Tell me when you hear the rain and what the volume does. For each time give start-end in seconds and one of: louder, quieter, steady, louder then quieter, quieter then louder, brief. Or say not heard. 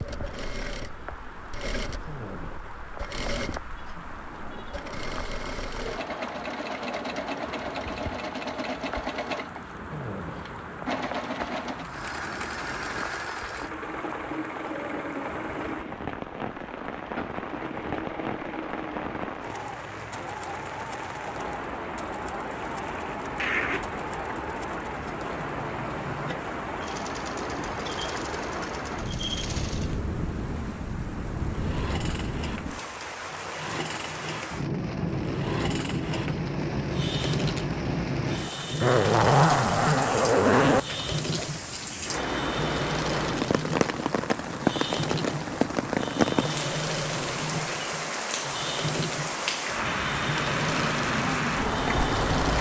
0.0-52.5 louder.